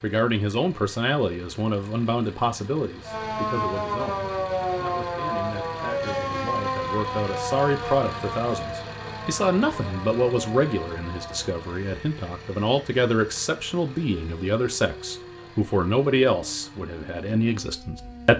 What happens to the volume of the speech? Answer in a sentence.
The volume of the speech goes down, then up.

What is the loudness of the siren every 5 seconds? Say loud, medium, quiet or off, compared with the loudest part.
loud, loud, quiet, quiet.